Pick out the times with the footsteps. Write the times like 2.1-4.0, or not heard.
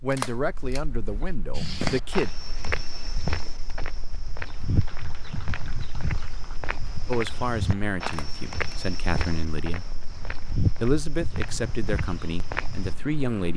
1.5-12.9.